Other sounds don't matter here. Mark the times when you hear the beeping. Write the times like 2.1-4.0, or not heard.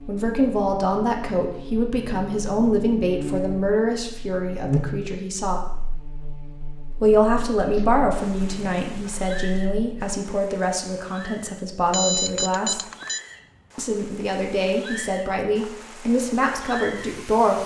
11.9-13.2.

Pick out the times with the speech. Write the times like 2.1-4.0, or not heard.
0.1-5.6, 7.0-12.8, 13.8-17.6.